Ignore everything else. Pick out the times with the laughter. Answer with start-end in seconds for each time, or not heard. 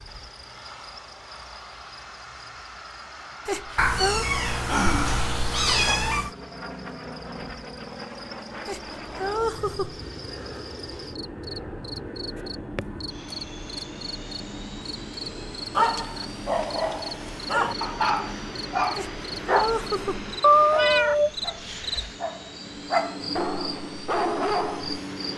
3.5-4.2, 8.7-10.0, 18.9-20.3.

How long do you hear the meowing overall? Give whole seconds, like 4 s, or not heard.
4 s.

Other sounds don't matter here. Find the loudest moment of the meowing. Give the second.
21 s.